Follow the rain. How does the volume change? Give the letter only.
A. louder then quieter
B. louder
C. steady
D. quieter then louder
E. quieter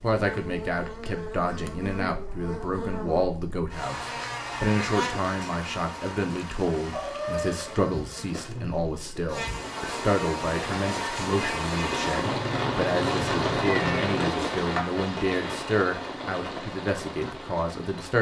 A.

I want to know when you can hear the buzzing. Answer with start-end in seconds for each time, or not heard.
0.0-12.4.